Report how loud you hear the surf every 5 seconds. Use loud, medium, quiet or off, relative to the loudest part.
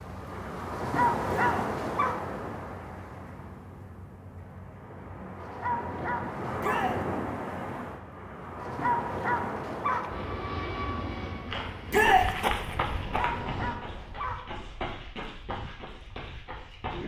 loud, loud, medium, off.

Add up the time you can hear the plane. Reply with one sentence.
The plane can be heard for 4 seconds in total.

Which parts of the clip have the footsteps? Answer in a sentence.
The footsteps can be heard from 11.4 to 17.0 s.